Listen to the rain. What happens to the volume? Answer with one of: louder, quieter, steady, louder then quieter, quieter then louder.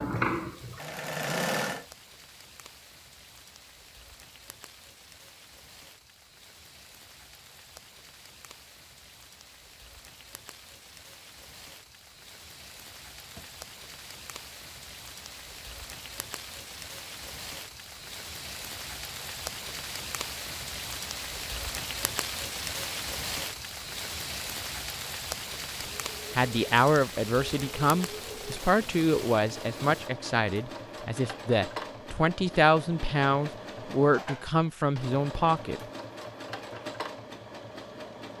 louder.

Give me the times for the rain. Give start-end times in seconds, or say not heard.
0.0-30.1.